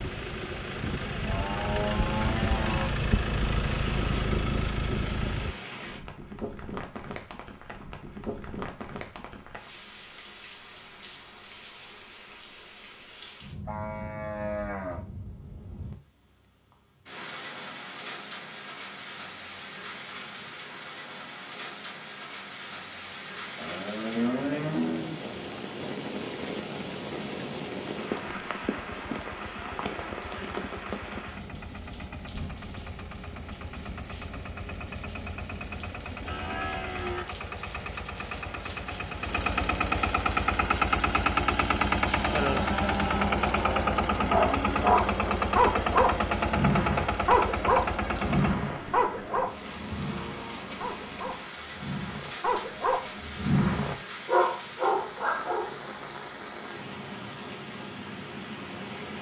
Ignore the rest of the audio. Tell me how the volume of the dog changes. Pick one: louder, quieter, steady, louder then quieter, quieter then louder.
quieter then louder.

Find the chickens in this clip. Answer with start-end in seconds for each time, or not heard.
not heard.